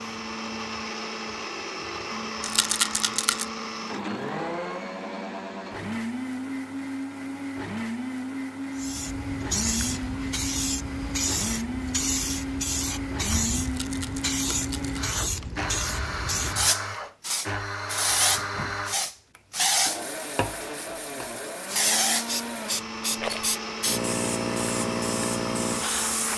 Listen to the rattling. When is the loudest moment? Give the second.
3 s.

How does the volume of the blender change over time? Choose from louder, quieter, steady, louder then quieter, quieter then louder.
steady.